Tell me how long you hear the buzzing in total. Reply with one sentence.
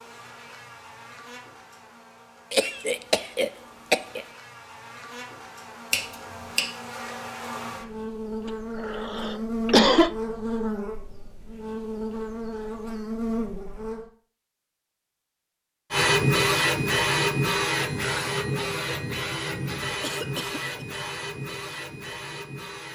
You can hear the buzzing for 14 seconds altogether.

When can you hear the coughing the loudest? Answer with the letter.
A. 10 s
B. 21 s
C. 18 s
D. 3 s
A.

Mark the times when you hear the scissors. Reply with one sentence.
You can hear the scissors from 5.9 to 6.7 s.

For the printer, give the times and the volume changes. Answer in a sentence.
You can hear the printer from 15.9 to 22.9 s, getting quieter.